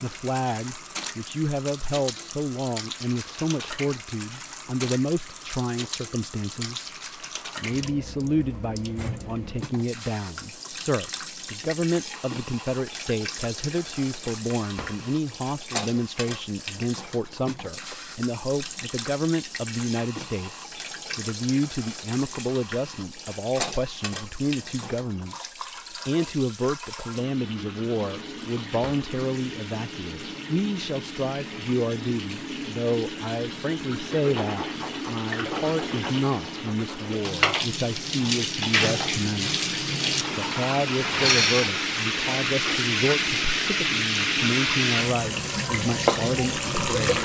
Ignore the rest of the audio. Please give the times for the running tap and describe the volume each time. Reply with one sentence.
The running tap can be heard from 0.0 to 47.2 s, getting louder.